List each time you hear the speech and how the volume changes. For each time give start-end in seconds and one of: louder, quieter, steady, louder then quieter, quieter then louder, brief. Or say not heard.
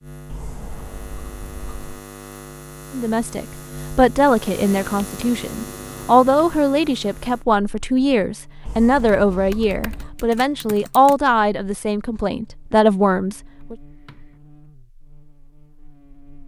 2.9-13.8 steady.